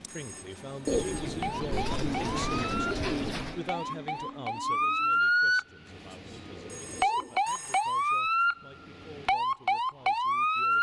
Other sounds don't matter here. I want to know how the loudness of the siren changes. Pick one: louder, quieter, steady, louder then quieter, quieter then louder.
louder.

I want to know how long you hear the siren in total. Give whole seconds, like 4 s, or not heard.
11 s.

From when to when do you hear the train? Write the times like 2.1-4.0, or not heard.
0.0-5.2.